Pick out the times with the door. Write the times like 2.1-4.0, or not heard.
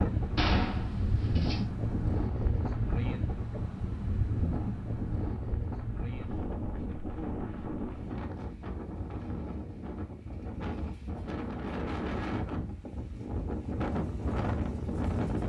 0.3-1.6.